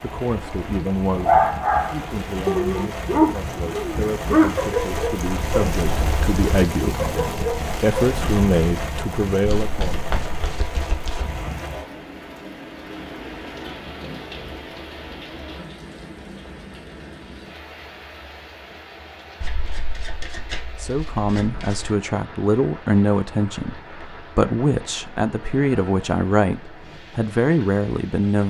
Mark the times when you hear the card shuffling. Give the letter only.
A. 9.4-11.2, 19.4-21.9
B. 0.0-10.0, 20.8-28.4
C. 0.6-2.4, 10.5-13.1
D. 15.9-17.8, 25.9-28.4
A.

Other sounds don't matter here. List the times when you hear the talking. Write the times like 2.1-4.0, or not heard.
0.0-10.0, 20.8-28.4.